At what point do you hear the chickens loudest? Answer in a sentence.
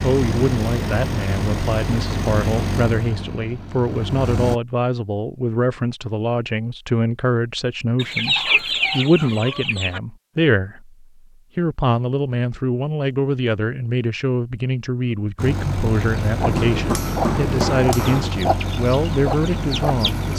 The loudest moment of the chickens is at 8 seconds.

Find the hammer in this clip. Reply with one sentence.
You can hear the hammer from 16.4 to 18.4 s.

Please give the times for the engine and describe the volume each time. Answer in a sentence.
The engine can be heard from 0.0 to 4.6 s, getting quieter; and from 15.3 to 20.3 s, at a steady volume.